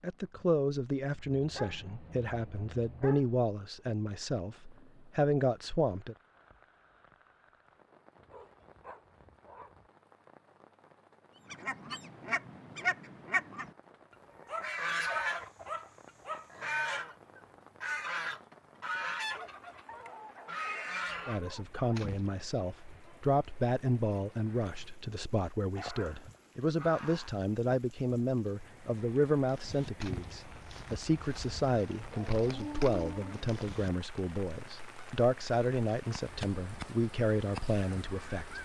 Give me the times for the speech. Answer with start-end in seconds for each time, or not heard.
0.0-6.2, 21.2-38.5.